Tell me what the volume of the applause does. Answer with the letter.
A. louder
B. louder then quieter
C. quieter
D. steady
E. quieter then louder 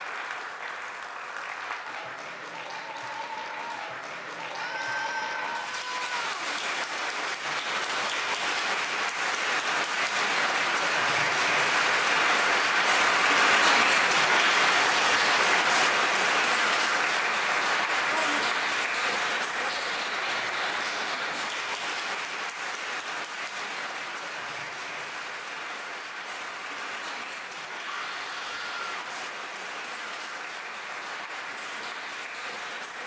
B.